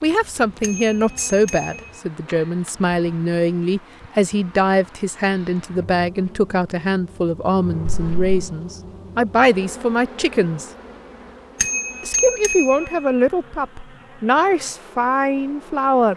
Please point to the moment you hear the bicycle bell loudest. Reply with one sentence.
The loudest moment of the bicycle bell is at 12 seconds.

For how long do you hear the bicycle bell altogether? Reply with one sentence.
The bicycle bell can be heard for 3 seconds in total.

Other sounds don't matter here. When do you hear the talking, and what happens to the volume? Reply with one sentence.
You can hear the talking from 0.0 to 10.7 s, at a steady volume; and from 12.0 to 16.1 s, at a steady volume.